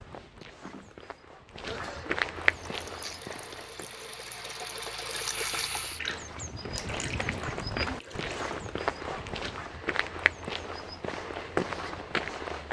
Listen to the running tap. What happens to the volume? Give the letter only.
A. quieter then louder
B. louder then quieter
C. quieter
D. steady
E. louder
B.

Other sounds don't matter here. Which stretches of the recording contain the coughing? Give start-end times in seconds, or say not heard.
0.4-2.1.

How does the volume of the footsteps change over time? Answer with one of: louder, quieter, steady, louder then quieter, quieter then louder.
louder.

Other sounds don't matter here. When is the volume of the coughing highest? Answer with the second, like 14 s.
2 s.